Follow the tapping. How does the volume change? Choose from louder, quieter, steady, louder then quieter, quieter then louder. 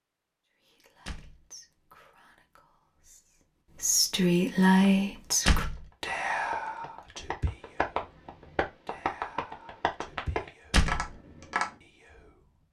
louder.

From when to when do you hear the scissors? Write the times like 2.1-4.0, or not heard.
not heard.